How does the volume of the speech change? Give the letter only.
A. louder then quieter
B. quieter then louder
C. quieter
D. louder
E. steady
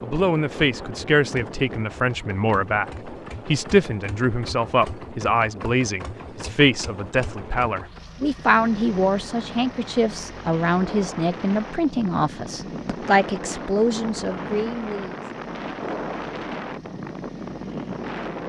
E.